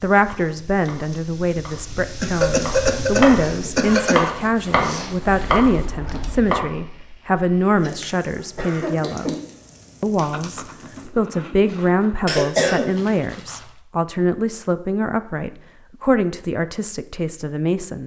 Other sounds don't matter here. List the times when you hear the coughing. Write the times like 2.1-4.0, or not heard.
2.2-4.3, 7.8-9.4, 12.2-13.7.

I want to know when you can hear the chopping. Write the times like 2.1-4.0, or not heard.
0.2-6.7.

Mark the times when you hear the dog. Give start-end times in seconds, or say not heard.
not heard.